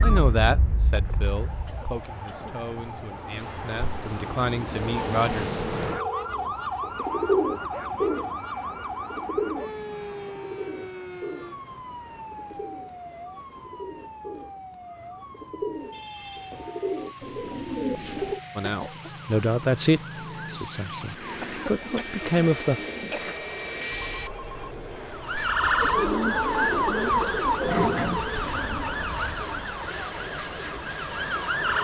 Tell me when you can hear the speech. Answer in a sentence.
The speech can be heard from 0.0 to 5.7 s and from 18.6 to 22.8 s.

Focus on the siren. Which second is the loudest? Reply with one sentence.
The loudest moment of the siren is at 26 seconds.